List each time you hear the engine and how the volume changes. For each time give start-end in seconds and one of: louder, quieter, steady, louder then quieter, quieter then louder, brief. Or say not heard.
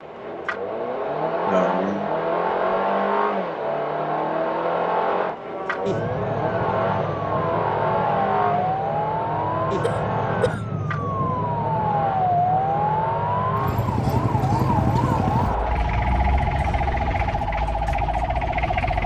0.0-19.0 quieter.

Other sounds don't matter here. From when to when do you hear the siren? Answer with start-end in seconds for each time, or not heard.
5.2-19.0.